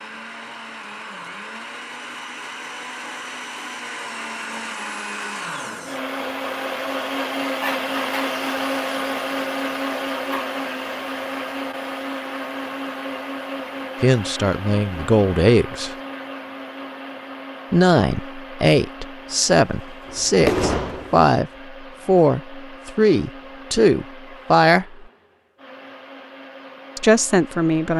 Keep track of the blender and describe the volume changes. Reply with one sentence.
The volume of the blender goes up, then down.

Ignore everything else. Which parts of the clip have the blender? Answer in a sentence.
The blender can be heard from 0.0 to 27.9 s.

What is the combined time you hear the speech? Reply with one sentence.
The speech can be heard for 10 seconds in total.